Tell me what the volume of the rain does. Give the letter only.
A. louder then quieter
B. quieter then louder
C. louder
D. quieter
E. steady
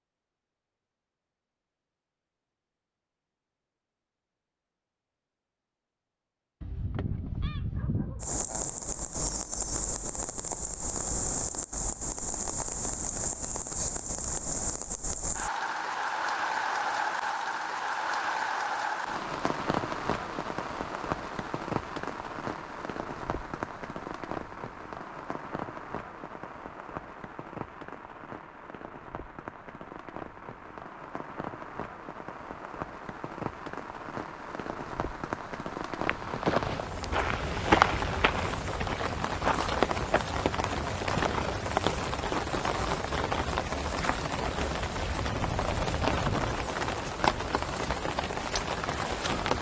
B.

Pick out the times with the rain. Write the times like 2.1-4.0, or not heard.
8.2-49.5.